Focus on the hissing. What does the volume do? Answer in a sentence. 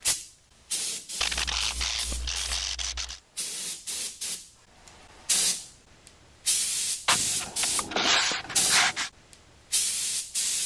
The loudness of the hissing goes up.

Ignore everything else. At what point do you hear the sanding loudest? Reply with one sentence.
The loudest moment of the sanding is at 8 seconds.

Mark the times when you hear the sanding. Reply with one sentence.
You can hear the sanding from 1.2 to 3.2 s and from 7.0 to 9.1 s.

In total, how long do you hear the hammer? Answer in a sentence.
You can't hear the hammer here.